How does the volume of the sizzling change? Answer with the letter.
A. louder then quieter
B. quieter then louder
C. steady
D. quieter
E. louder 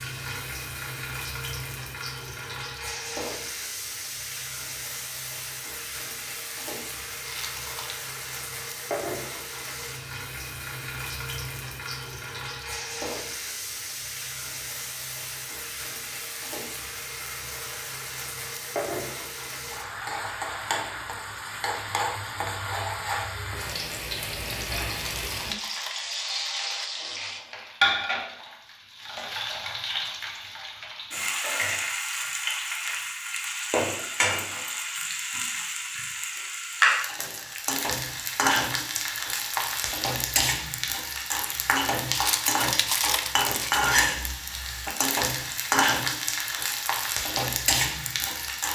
E.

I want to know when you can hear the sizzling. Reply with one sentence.
The sizzling can be heard from 0.0 to 48.7 s.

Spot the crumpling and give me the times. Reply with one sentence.
You can hear the crumpling from 7.2 to 8.0 s, from 24.9 to 26.9 s and from 42.1 to 43.9 s.